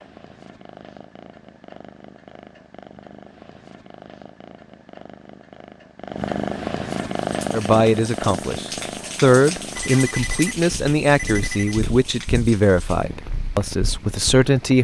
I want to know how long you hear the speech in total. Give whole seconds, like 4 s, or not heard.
7 s.